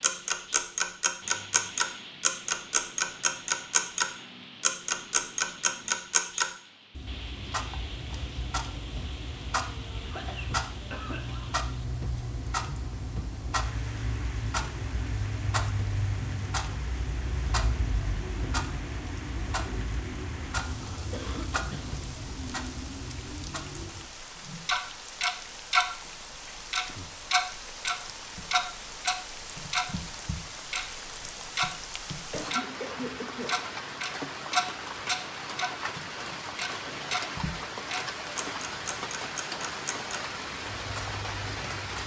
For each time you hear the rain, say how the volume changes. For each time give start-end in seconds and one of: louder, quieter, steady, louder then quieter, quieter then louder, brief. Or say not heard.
0.0-42.0 louder.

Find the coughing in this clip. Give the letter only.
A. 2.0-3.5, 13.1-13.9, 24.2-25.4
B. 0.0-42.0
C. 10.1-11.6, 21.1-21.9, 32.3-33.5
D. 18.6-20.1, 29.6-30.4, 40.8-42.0
C.